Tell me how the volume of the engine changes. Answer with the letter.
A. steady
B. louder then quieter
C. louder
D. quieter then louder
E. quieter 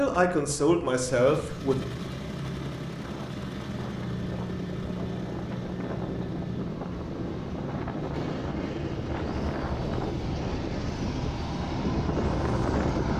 E.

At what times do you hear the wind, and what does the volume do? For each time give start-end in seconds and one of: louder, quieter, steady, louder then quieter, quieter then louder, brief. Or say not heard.
0.0-13.1 louder.